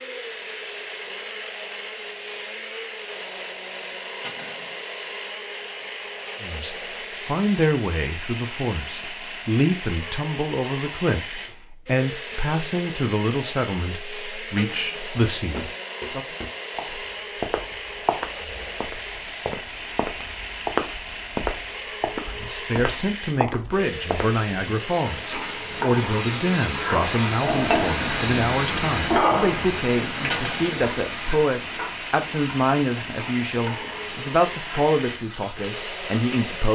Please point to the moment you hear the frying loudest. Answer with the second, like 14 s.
29 s.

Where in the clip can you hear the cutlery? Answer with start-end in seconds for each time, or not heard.
4.2-4.8, 14.6-15.1, 30.3-30.8.